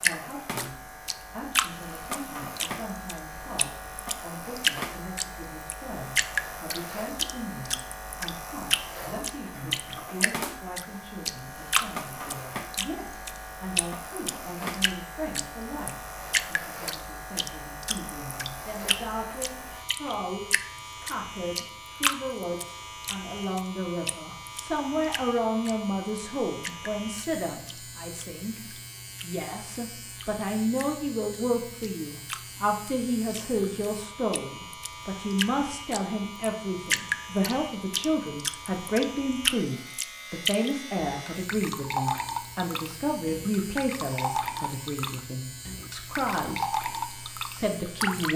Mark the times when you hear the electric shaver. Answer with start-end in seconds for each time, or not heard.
0.0-48.3.